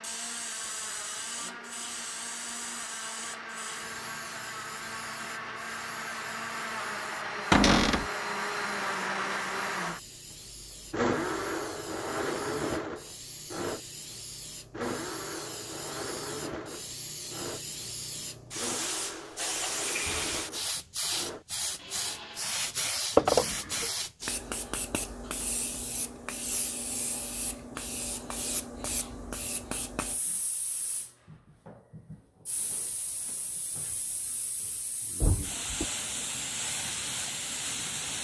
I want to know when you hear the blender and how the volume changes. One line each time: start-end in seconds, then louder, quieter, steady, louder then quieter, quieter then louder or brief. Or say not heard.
0.0-22.8 louder then quieter.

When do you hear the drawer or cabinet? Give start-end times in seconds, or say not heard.
7.5-8.1, 23.1-23.9, 35.2-35.9.